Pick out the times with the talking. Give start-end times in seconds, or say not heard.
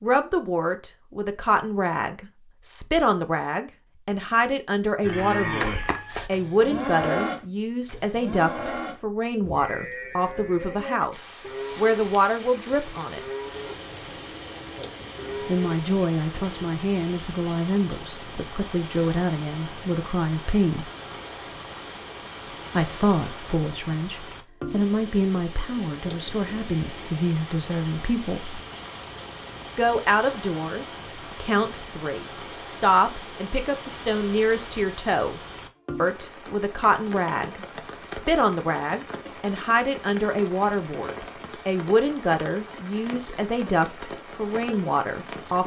0.0-13.2, 15.4-20.9, 22.7-28.6, 29.8-35.4, 36.0-45.6.